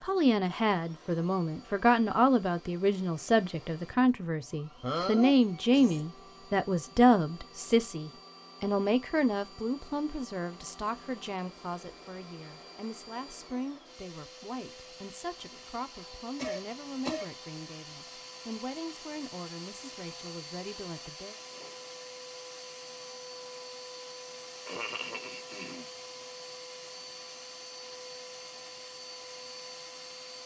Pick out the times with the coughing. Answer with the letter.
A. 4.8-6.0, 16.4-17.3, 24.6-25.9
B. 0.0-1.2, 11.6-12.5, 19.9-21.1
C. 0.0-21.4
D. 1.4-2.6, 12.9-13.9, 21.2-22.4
A.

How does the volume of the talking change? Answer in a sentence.
The loudness of the talking goes down.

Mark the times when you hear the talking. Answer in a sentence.
The talking can be heard from 0.0 to 21.4 s.